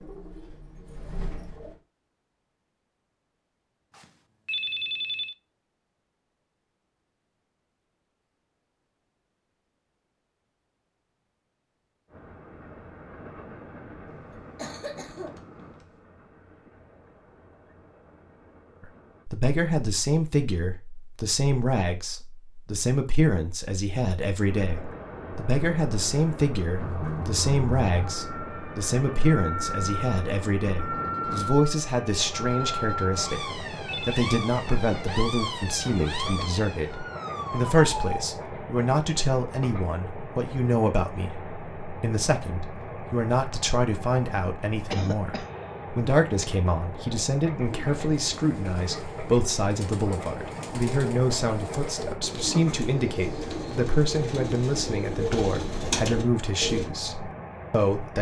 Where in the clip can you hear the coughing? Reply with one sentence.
You can hear the coughing from 14.3 to 15.4 s and from 44.9 to 45.5 s.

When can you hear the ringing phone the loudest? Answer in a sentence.
The loudest moment of the ringing phone is at 5 seconds.